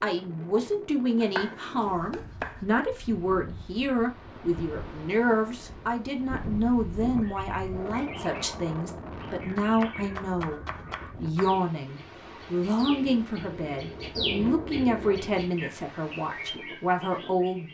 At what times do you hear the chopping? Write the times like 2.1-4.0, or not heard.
1.2-2.7, 9.6-11.6.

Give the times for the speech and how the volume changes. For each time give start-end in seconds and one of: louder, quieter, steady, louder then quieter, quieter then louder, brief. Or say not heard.
0.0-17.6 steady.